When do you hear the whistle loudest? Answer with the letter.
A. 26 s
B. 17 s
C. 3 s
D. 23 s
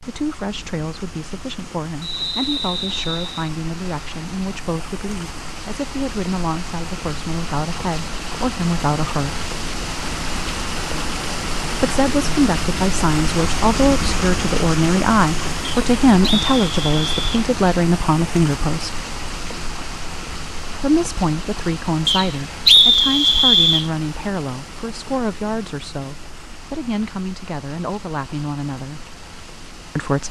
D.